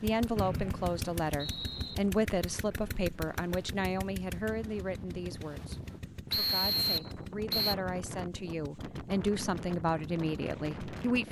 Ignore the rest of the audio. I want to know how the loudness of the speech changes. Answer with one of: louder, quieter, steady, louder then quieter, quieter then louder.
quieter then louder.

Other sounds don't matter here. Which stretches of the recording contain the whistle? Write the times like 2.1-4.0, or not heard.
0.3-1.9, 6.3-7.8.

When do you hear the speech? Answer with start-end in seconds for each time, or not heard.
0.0-11.2.